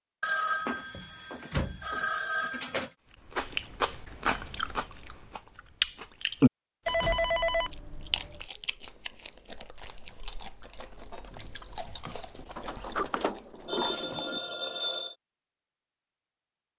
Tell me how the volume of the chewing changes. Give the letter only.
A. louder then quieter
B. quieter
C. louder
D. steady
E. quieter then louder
B.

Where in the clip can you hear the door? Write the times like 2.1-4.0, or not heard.
0.9-1.9, 6.8-7.5, 12.6-14.4.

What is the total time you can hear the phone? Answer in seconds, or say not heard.
6 s.